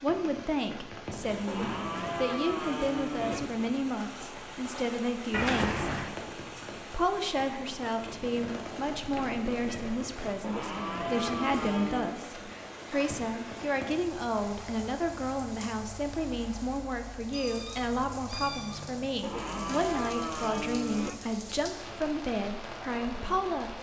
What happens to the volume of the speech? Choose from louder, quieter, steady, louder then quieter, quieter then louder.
steady.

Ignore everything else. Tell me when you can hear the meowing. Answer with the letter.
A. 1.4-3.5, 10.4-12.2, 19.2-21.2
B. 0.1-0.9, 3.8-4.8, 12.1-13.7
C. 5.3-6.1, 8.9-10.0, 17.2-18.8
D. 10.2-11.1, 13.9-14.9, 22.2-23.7
C.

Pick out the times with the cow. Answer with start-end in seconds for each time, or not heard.
1.4-3.5, 10.4-12.2, 19.2-21.2.